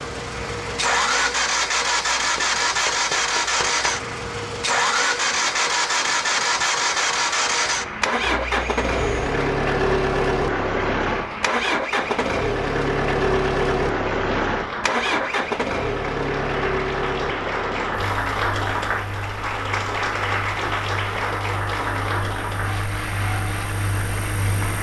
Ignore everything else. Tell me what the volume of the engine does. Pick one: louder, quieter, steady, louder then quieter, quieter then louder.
quieter.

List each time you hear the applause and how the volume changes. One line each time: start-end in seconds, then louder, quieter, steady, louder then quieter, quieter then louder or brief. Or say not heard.
0.0-24.7 louder.